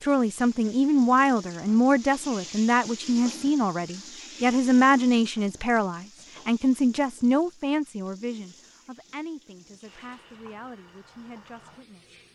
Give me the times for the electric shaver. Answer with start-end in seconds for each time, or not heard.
not heard.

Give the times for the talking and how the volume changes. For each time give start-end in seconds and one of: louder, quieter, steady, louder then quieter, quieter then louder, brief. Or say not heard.
0.0-12.2 quieter.